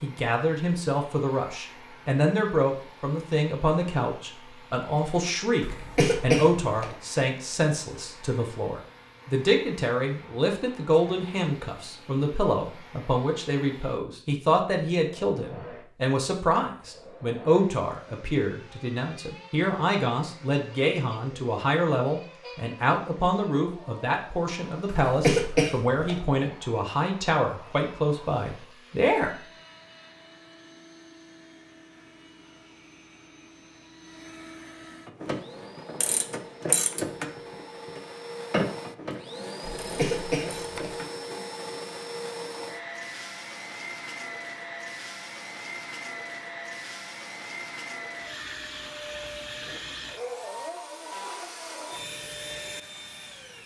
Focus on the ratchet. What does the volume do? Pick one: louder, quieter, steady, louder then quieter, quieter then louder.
louder then quieter.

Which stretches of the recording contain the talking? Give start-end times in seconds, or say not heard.
0.0-29.3.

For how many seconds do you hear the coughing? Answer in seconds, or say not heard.
4 s.